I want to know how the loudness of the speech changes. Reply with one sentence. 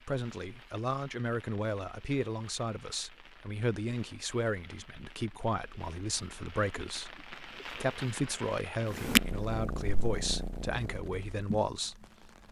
The volume of the speech stays about the same.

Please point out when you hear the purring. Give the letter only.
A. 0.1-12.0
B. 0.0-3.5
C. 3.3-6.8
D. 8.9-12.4
D.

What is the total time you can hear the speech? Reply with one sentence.
The speech can be heard for 12 seconds in total.